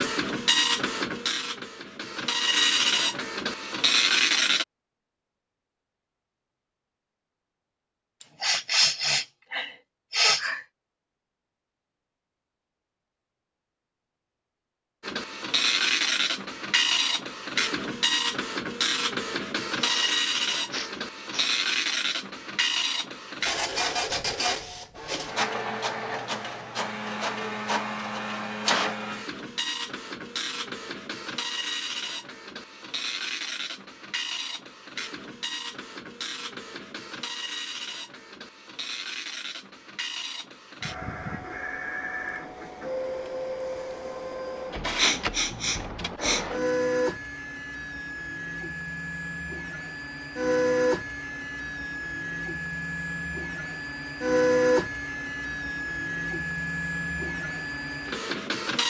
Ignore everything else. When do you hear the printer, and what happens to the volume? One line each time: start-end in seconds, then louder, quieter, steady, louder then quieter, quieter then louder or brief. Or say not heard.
0.0-4.7 quieter then louder
15.0-58.8 quieter then louder.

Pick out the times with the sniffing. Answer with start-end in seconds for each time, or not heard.
8.2-10.6, 19.8-21.5, 45.0-46.5.